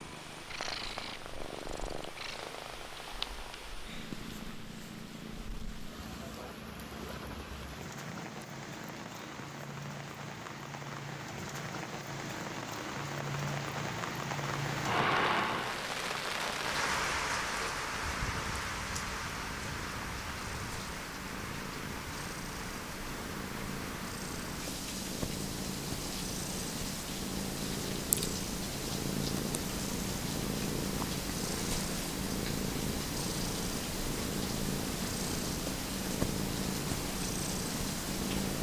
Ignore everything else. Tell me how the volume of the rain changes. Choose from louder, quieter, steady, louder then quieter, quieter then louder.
louder then quieter.